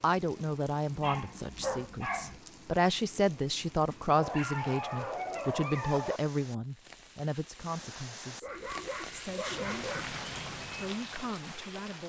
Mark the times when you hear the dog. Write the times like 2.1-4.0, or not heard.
1.0-2.4, 4.2-6.2, 8.4-10.2.